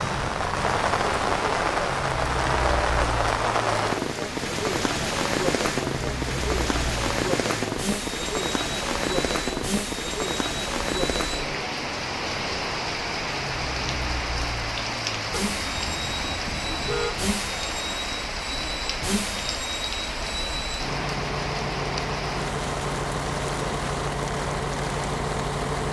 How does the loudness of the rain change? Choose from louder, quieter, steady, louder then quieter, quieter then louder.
quieter.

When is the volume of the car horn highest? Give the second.
17 s.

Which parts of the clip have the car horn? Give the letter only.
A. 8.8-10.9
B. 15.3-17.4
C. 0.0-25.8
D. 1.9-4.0
B.